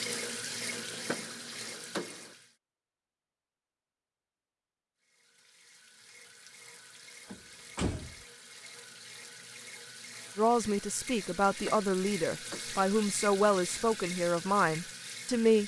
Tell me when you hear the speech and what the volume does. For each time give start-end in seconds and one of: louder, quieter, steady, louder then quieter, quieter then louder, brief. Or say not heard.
10.3-15.6 steady.